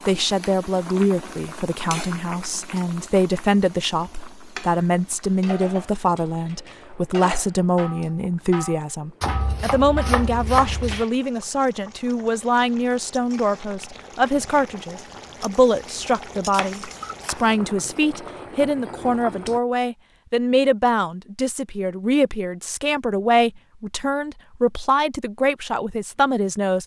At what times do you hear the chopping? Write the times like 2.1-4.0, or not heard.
9.2-11.1, 16.5-17.4.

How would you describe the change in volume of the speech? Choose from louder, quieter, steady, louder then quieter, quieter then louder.
steady.